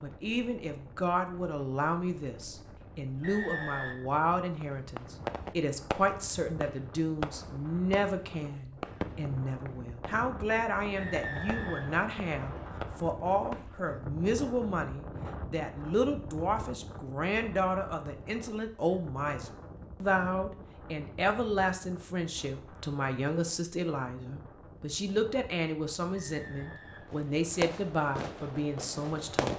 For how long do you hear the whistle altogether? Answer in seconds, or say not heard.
4 s.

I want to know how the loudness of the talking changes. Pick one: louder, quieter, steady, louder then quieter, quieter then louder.
steady.